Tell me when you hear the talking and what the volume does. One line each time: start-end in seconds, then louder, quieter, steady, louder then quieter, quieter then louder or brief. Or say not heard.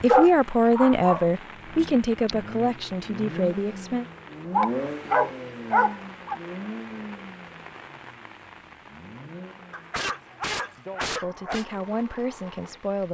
0.0-4.0 quieter
11.2-13.1 brief.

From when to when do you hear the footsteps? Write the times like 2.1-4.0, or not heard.
not heard.